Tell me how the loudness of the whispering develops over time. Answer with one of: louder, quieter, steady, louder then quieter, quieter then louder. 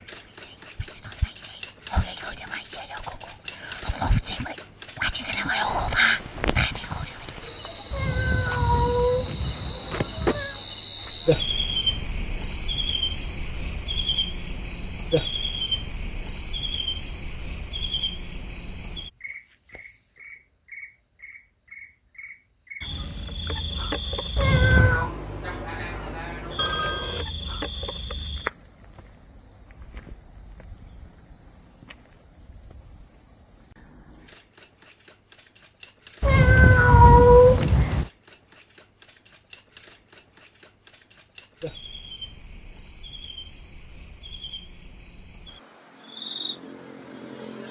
louder.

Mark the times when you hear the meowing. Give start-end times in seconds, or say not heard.
7.9-10.6, 24.4-25.1, 36.2-38.0.